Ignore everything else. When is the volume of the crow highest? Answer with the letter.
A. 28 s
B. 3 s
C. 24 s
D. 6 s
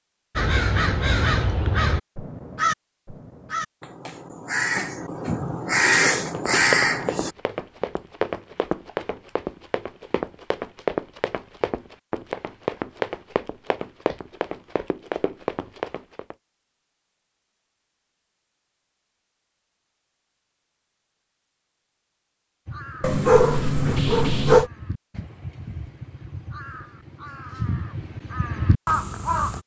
D.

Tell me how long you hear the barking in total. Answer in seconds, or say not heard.
2 s.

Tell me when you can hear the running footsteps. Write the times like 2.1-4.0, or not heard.
6.3-16.4.